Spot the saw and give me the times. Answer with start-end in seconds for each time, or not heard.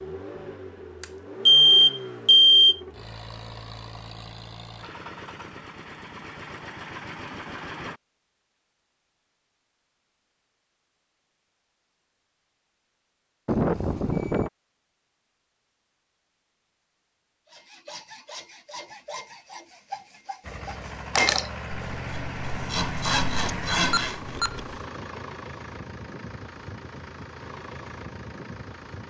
17.4-24.4.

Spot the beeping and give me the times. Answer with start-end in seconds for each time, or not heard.
1.0-2.8, 13.4-14.5, 23.4-24.8.